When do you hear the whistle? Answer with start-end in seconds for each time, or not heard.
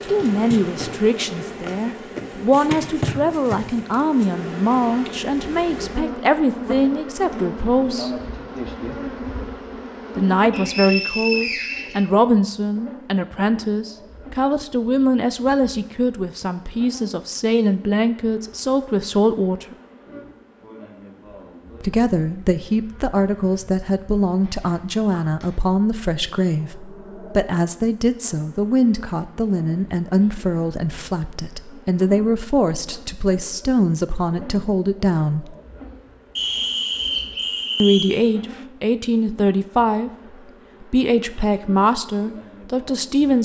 10.5-12.1, 36.4-38.1.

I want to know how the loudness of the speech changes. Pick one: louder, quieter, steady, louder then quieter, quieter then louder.
steady.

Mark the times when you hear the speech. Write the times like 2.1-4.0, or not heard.
0.1-8.1, 10.2-19.8, 21.8-35.5, 37.8-43.4.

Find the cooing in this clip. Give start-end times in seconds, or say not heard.
not heard.